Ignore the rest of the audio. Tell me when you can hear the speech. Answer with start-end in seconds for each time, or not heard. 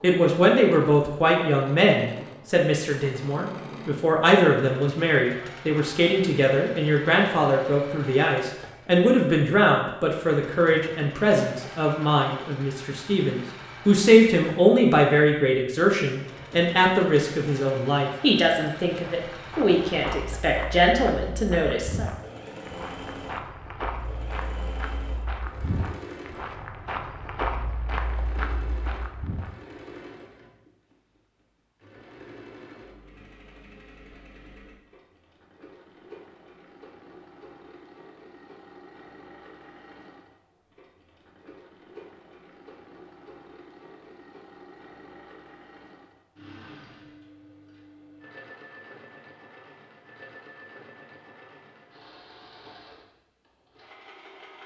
0.0-22.1.